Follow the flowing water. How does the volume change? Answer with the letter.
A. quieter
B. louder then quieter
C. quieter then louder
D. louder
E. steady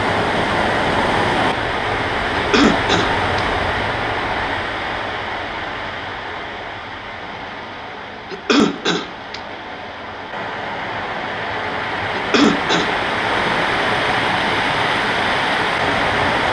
C.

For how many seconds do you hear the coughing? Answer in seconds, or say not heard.
3 s.